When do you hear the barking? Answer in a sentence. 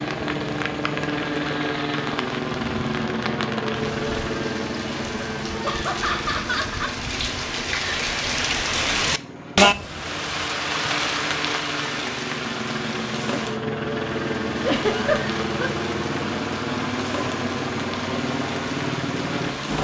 The barking can't be heard in this clip.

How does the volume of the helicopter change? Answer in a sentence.
The volume of the helicopter goes down, then up.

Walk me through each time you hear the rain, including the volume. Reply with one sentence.
You can hear the rain from 0.0 to 19.7 s, getting louder then quieter.